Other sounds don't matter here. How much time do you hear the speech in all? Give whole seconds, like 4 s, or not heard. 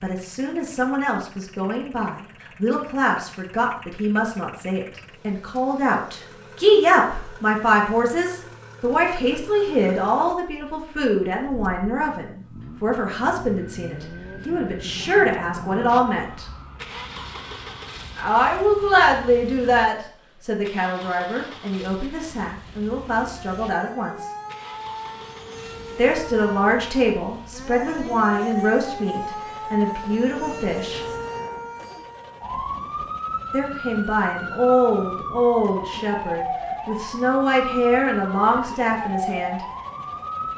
34 s.